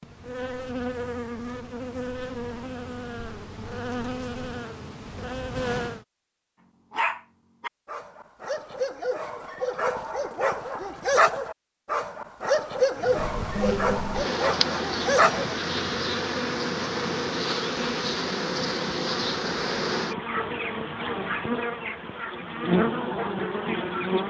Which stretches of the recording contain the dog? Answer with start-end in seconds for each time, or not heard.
6.9-15.6.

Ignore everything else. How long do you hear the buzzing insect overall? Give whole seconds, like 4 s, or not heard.
17 s.